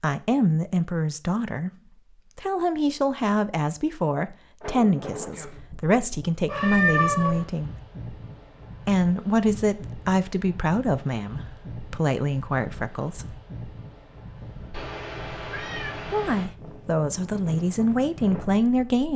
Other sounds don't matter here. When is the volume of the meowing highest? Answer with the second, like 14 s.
7 s.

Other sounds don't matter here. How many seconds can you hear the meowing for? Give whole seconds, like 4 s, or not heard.
3 s.